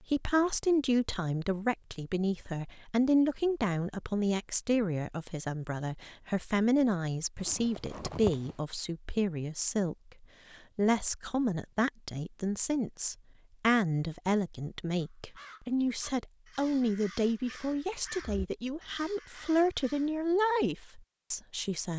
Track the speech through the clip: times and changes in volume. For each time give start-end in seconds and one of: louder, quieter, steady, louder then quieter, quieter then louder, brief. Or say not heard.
0.1-21.9 steady.